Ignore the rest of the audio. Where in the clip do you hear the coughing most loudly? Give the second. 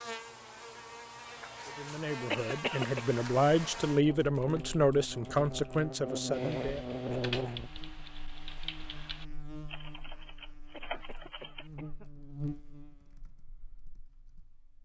3 s.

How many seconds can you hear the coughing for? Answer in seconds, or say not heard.
2 s.